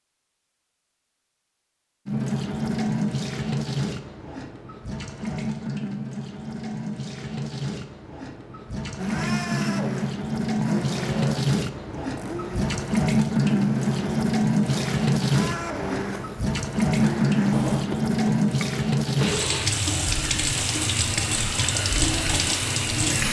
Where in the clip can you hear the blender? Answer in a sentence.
You can hear the blender from 8.9 to 23.2 s.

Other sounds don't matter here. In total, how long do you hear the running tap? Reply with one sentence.
You can hear the running tap for 21 seconds altogether.